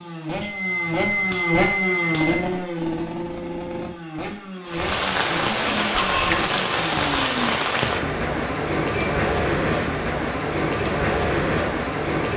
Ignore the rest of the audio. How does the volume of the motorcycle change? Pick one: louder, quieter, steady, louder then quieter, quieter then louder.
quieter.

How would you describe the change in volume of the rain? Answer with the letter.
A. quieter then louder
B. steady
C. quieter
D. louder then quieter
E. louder
B.